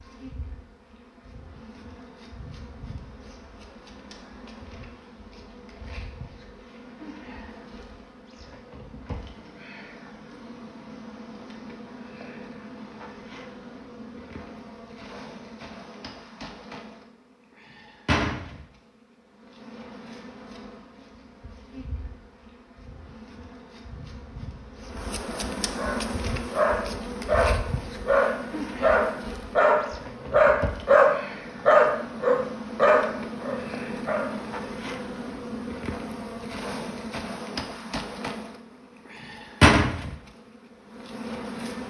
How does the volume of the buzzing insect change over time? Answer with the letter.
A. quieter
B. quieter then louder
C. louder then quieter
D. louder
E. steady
D.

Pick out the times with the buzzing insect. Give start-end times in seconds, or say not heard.
0.0-41.8.